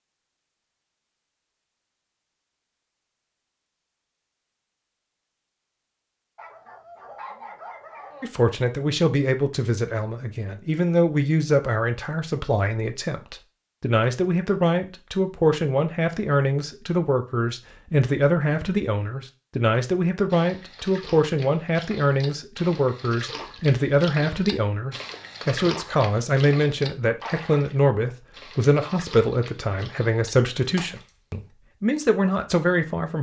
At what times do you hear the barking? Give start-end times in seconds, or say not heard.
6.3-8.2.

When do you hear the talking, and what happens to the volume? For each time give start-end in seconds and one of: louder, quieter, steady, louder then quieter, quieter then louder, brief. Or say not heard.
8.2-33.1 steady.